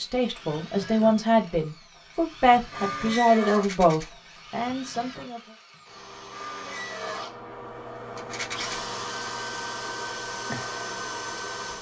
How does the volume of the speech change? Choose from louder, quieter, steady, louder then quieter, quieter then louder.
quieter.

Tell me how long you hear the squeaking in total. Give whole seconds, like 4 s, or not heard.
2 s.